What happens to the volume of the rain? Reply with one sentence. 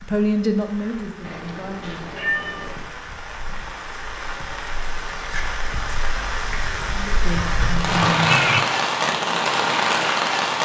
The loudness of the rain goes up.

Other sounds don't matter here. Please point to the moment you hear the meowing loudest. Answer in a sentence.
The loudest moment of the meowing is at 8 seconds.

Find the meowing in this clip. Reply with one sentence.
The meowing can be heard from 1.2 to 2.8 s and from 7.6 to 8.7 s.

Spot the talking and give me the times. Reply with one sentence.
The talking can be heard from 0.0 to 2.2 s and from 6.8 to 8.3 s.